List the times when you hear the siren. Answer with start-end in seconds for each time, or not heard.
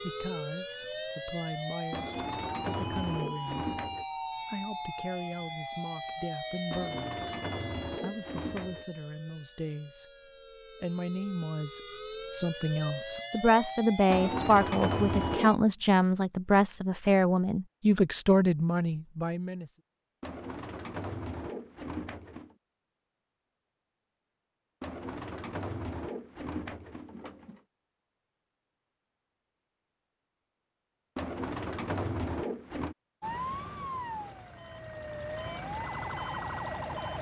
0.0-15.6, 33.2-37.1.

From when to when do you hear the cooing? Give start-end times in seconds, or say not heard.
1.9-4.0, 6.7-8.8, 14.1-15.6, 20.2-22.6, 24.8-27.6, 31.1-33.0.